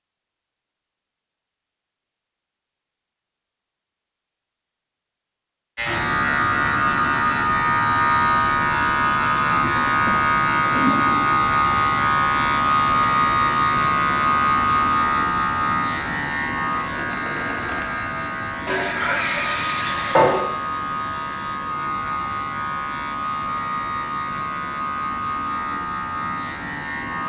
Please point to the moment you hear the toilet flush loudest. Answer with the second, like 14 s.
20 s.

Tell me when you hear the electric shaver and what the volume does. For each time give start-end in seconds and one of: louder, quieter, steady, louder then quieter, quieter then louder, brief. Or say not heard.
5.8-27.2 quieter.